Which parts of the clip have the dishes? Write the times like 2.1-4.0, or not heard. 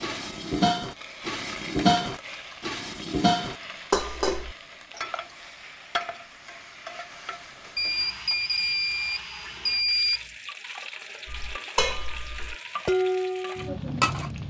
0.0-5.0, 11.2-14.3.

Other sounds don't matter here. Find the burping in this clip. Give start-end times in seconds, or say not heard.
not heard.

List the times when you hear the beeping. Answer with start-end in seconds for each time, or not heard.
7.8-10.2.